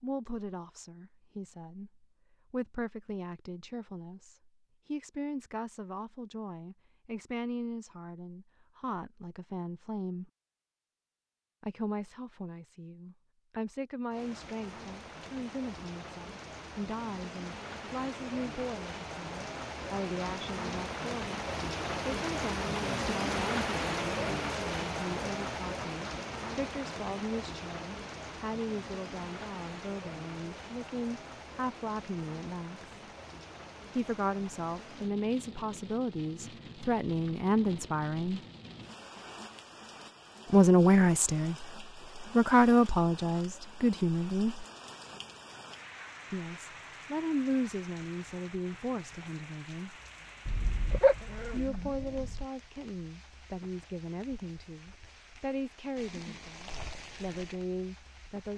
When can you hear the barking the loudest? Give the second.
51 s.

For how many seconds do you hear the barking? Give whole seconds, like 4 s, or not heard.
2 s.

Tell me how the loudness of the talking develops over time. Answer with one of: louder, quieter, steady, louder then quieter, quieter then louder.
louder then quieter.